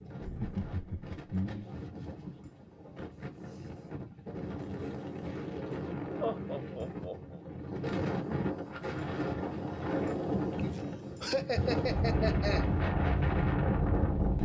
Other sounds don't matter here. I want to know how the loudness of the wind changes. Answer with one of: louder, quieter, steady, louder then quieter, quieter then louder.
louder.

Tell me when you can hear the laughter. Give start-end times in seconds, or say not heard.
0.2-1.8, 6.2-7.4, 10.6-12.7.